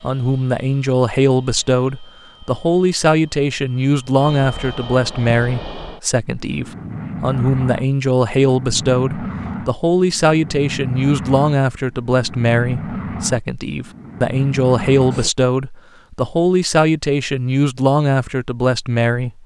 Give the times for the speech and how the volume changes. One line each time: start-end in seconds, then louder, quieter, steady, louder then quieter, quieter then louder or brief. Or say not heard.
0.0-19.4 steady.